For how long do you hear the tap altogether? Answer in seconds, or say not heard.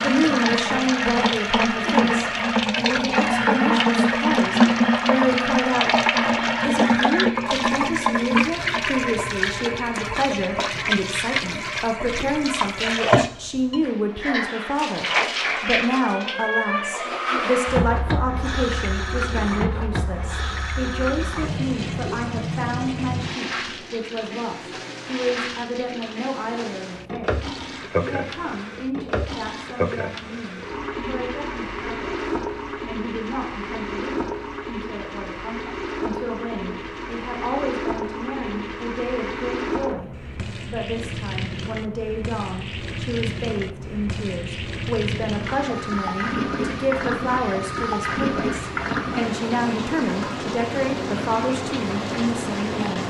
53 s.